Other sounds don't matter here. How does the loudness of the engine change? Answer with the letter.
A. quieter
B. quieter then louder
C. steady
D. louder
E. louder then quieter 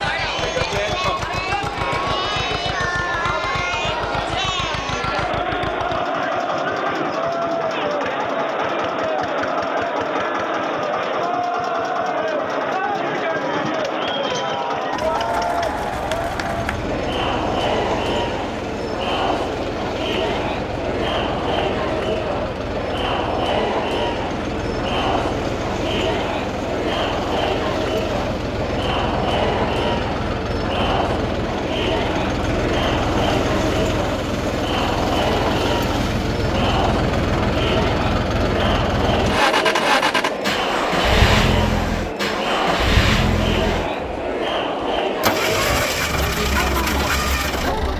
D.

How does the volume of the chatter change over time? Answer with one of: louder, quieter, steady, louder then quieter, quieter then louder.
steady.